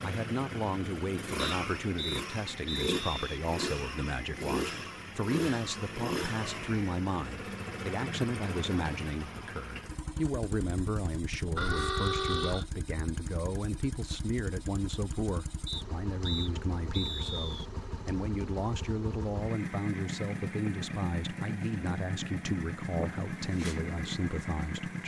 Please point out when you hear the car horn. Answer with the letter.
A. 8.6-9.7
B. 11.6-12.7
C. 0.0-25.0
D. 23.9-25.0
B.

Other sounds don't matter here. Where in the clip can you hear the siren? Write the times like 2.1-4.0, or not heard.
not heard.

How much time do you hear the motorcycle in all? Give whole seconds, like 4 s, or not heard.
25 s.